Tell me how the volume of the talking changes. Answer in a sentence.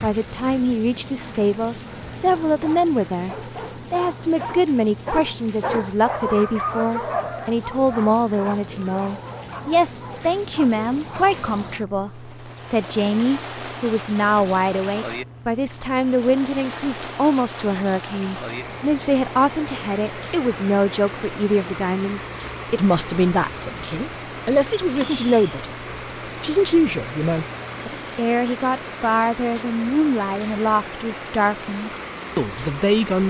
The volume of the talking stays about the same.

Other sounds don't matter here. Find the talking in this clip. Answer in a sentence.
You can hear the talking from 0.0 to 25.7 s and from 26.4 to 33.2 s.